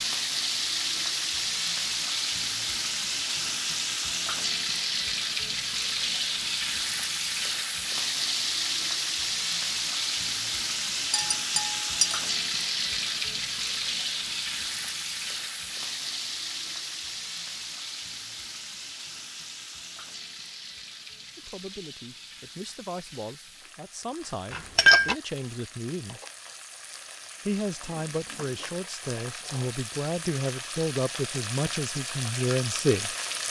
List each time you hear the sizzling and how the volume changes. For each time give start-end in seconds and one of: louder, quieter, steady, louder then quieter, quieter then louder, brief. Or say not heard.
0.0-33.4 quieter then louder.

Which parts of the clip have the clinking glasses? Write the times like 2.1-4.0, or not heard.
11.1-12.2, 24.5-25.1.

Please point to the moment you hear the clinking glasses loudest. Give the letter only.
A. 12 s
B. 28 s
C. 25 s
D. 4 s
C.